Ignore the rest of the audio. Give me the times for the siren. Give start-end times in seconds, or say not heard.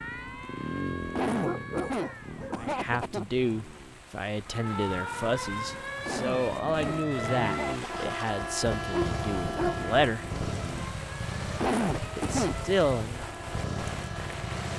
0.0-2.5, 4.5-14.7.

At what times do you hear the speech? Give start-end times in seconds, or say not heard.
2.6-10.2, 12.2-13.2.